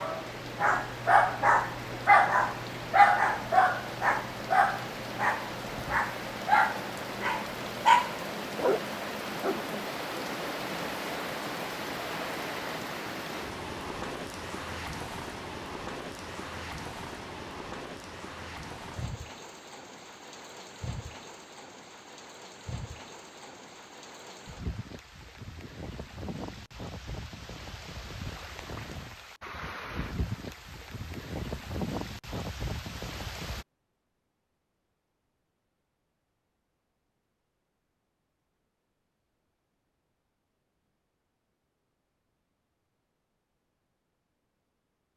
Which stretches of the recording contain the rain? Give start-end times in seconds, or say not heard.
0.0-33.6.